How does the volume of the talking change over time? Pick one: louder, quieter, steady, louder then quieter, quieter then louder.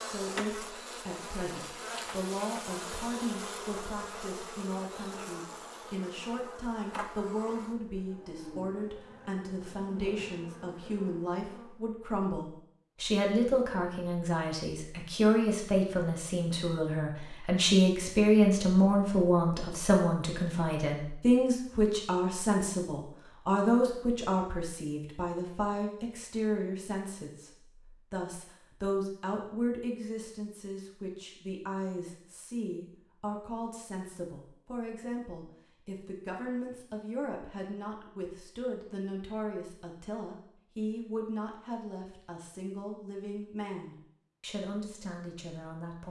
louder then quieter.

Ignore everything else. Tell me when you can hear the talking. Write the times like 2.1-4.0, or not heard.
0.0-27.5, 28.1-46.0.